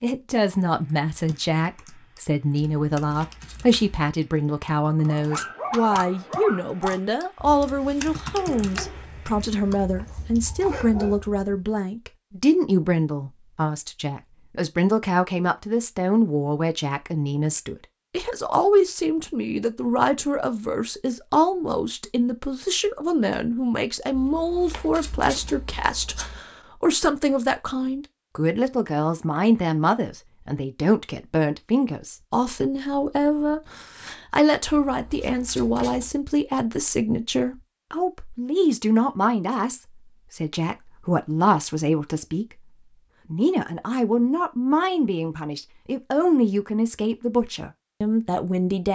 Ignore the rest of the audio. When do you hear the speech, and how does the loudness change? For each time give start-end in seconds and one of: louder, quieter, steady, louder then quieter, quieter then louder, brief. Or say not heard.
0.0-48.9 steady.